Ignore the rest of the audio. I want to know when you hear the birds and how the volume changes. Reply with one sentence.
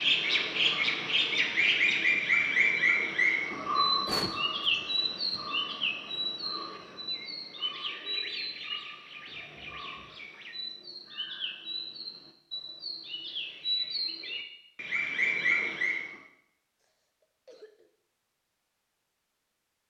The birds can be heard from 0.0 to 16.1 s, getting quieter then louder.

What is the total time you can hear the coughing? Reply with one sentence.
The coughing can be heard for 3 seconds in total.